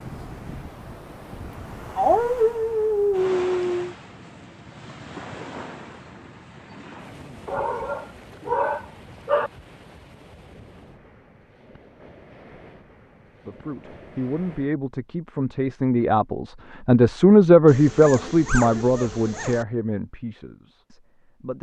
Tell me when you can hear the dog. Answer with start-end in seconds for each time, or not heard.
1.9-4.0, 7.5-9.5, 17.6-19.6.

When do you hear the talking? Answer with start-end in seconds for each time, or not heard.
13.4-21.5.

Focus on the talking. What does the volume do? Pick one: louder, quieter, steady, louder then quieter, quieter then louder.
louder then quieter.